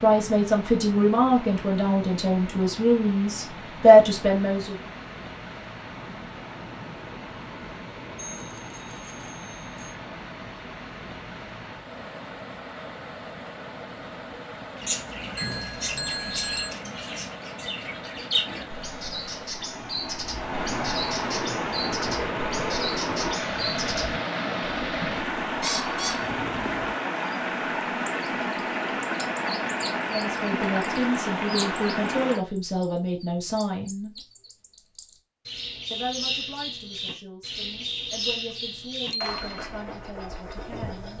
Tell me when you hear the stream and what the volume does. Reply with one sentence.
You can hear the stream from 0.0 to 32.5 s, getting louder.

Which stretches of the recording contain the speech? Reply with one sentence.
The speech can be heard from 0.0 to 4.8 s, from 30.1 to 34.1 s and from 35.9 to 41.1 s.